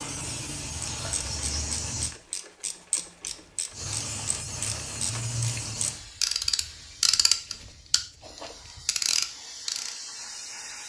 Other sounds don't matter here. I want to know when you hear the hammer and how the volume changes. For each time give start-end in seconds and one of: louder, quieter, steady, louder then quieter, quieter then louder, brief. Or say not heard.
not heard.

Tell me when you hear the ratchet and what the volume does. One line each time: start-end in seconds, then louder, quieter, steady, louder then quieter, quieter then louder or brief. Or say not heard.
1.1-10.0 louder.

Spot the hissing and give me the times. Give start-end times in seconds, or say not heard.
0.0-2.1, 3.7-10.8.